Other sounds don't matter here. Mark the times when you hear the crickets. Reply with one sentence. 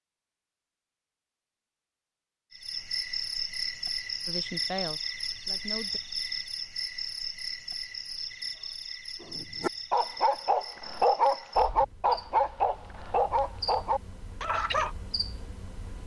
You can hear the crickets from 2.5 to 16.0 s.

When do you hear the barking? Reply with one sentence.
The barking can be heard from 9.2 to 14.9 s.